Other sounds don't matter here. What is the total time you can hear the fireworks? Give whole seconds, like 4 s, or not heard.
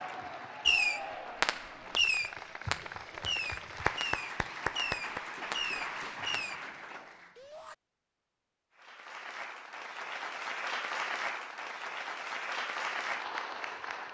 6 s.